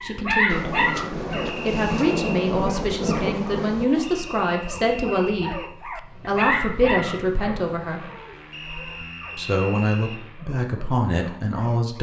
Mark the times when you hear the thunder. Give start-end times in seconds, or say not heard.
0.5-3.9.